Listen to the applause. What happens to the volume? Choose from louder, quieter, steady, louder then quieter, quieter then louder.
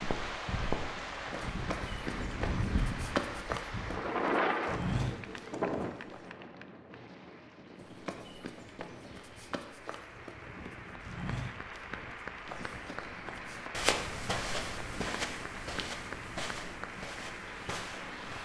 quieter then louder.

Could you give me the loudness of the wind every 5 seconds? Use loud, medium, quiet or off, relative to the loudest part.
loud, medium, quiet, quiet.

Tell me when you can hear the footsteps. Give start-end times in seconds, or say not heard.
0.0-6.2, 7.8-18.4.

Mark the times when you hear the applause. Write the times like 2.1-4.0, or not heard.
0.1-18.4.